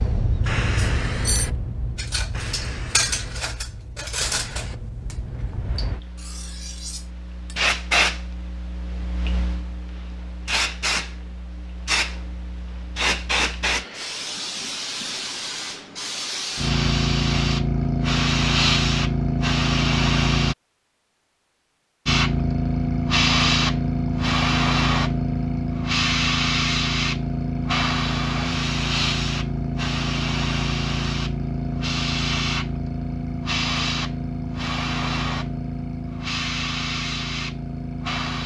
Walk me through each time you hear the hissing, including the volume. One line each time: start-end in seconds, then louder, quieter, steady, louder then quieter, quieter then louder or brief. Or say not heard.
0.0-20.6 louder
22.1-38.4 quieter.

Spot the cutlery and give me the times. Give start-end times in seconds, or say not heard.
0.8-7.6.